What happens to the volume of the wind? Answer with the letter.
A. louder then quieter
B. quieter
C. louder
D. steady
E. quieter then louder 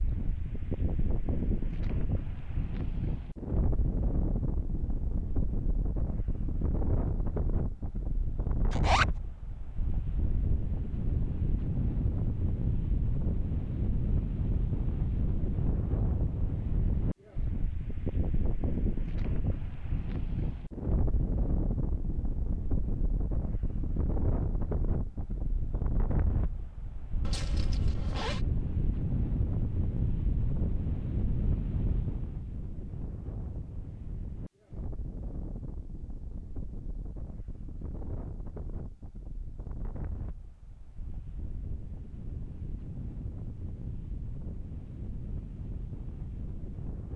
B.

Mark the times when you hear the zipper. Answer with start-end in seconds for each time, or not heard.
8.7-9.1, 27.2-28.4.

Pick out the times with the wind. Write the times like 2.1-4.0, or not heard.
0.0-47.1.